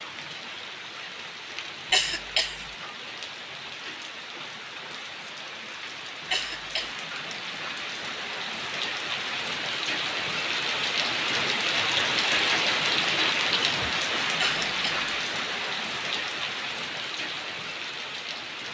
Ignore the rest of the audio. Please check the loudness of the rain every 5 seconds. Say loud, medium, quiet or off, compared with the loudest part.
quiet, medium, loud, medium.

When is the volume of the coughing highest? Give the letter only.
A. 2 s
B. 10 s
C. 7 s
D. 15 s
A.